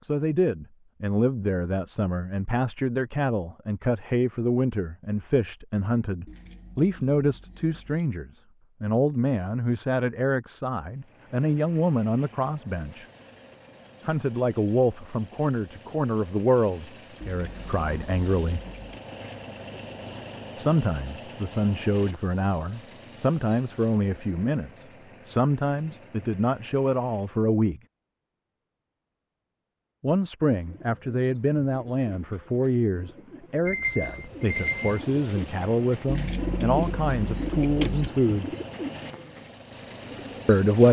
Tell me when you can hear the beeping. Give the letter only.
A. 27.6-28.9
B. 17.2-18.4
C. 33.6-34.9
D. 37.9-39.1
C.